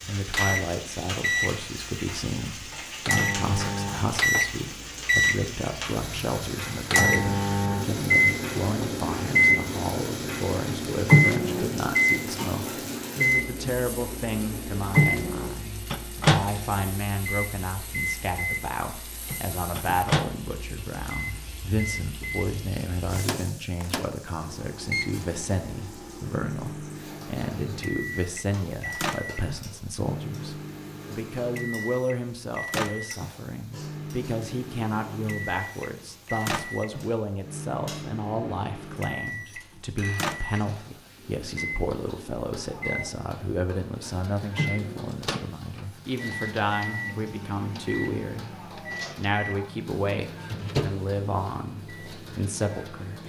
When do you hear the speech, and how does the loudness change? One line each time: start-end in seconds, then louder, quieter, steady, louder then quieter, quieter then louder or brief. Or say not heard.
0.1-53.2 steady.